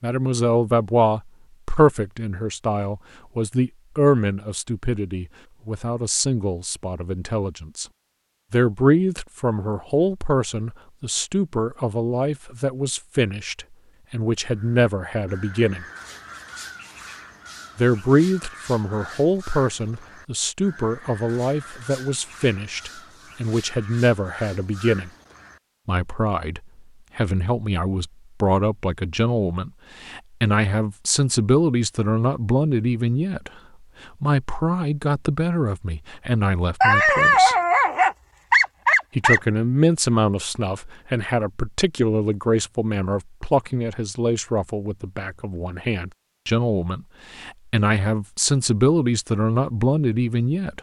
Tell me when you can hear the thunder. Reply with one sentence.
You can't hear the thunder here.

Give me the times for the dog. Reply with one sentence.
The dog can be heard from 36.8 to 39.4 s.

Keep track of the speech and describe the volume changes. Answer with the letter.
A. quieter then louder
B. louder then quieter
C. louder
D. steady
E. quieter
D.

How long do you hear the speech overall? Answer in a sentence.
You can hear the speech for 46 seconds altogether.